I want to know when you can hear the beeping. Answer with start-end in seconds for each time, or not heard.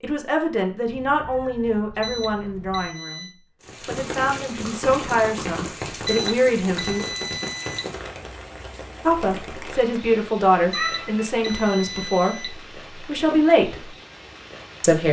2.0-3.4, 6.0-7.9, 10.7-12.6.